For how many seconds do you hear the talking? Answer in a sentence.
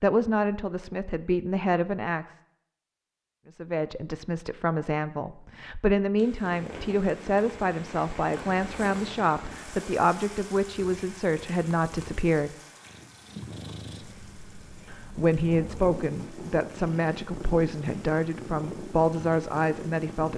The talking can be heard for 17 seconds in total.